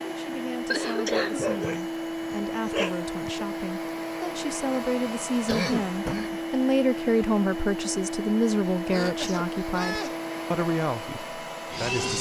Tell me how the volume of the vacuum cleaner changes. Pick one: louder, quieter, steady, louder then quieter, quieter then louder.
steady.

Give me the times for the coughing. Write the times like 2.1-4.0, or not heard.
0.7-1.4, 5.5-6.4, 8.9-10.2.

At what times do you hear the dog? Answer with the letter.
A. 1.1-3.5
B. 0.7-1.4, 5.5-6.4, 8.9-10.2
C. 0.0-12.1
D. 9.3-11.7
A.